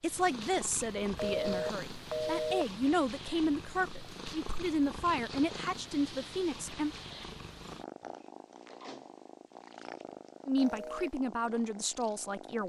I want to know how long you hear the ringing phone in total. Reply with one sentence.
The ringing phone can be heard for 2 seconds in total.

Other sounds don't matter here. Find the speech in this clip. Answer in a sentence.
You can hear the speech from 0.0 to 7.0 s and from 10.4 to 12.6 s.